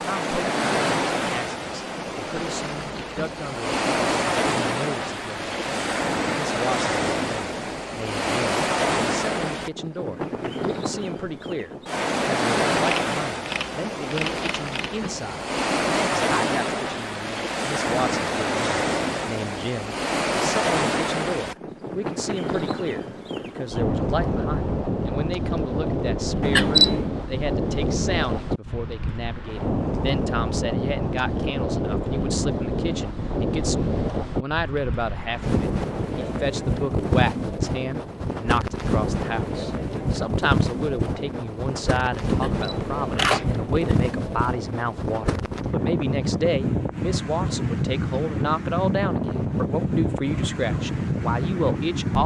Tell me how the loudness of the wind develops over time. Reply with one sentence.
The volume of the wind stays about the same.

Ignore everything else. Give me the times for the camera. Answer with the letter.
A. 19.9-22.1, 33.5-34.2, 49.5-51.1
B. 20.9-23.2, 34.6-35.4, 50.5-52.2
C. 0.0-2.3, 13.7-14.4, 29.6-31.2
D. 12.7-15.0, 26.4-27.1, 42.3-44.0
D.